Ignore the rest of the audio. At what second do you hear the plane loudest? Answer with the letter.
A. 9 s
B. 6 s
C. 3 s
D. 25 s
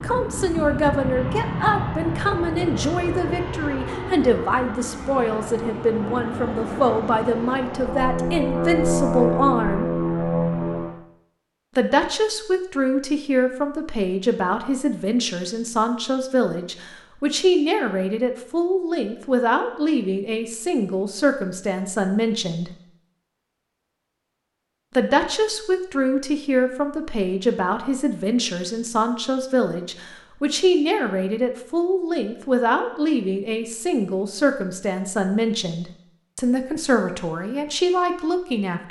A.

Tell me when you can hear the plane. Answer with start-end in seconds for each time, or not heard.
0.0-11.1.